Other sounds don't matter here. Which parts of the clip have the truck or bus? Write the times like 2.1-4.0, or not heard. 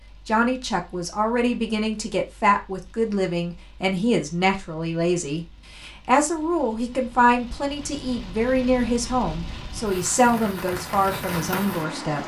not heard.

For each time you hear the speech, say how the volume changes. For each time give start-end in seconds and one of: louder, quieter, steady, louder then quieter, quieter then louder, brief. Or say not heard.
0.2-12.2 steady.